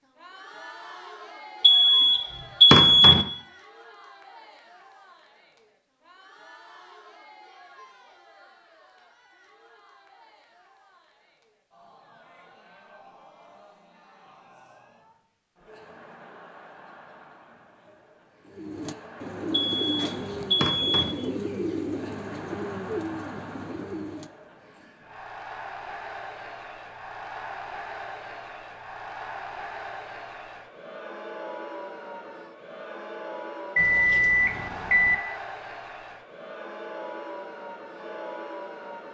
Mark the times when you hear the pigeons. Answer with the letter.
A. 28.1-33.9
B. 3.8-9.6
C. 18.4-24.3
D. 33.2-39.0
C.